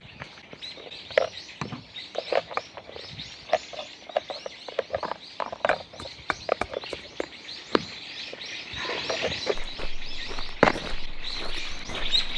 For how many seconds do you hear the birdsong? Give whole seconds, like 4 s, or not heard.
12 s.